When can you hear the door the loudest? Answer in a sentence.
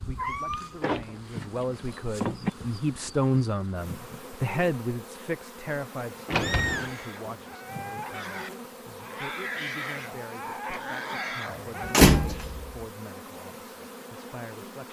The volume of the door peaks at 12 seconds.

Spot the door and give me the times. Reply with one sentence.
You can hear the door from 0.5 to 2.5 s, from 6.2 to 7.0 s and from 11.9 to 12.7 s.